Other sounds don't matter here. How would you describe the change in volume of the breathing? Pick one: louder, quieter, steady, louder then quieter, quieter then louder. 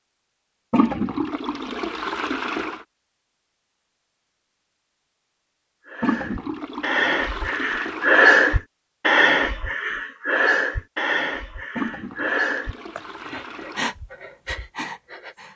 louder then quieter.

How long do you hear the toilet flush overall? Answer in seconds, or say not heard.
7 s.